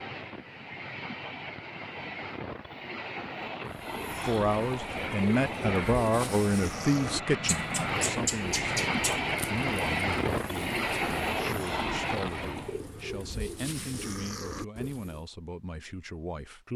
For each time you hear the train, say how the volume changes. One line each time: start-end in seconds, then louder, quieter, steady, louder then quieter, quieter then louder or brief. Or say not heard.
0.0-12.8 louder.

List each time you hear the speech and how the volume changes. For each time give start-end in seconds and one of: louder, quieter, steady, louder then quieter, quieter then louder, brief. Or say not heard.
4.2-16.7 quieter.